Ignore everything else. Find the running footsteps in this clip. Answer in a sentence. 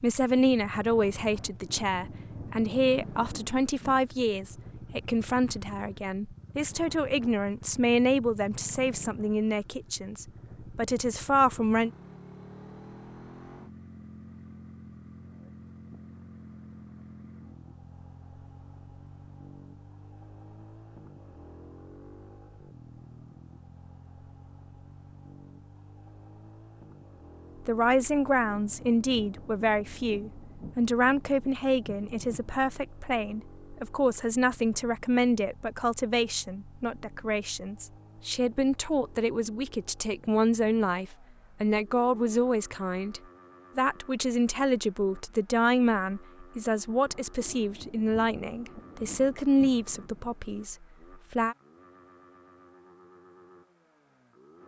The running footsteps can't be heard in this clip.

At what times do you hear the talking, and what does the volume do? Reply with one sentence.
You can hear the talking from 0.0 to 11.9 s, at a steady volume; and from 27.6 to 51.5 s, at a steady volume.